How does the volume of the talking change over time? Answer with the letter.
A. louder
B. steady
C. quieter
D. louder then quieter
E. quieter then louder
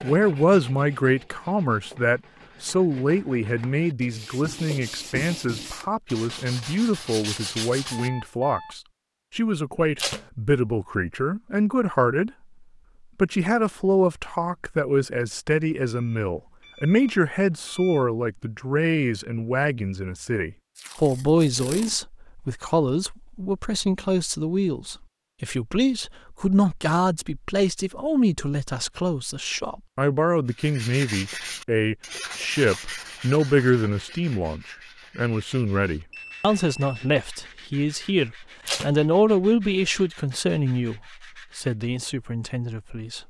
B.